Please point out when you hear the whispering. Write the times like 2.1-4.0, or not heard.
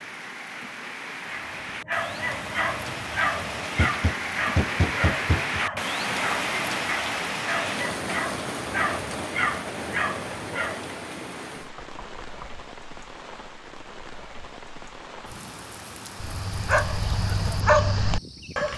not heard.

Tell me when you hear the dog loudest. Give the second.
18 s.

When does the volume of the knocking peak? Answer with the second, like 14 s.
5 s.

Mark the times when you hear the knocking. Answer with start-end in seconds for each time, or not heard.
3.8-5.6, 11.6-12.5.